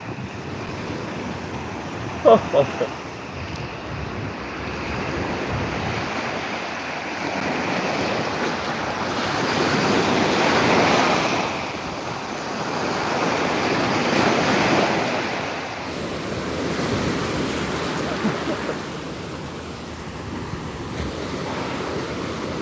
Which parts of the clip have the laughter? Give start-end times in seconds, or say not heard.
2.2-2.9, 18.1-18.8.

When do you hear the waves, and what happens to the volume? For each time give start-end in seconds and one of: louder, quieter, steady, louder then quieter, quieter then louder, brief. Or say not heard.
0.0-22.5 louder then quieter.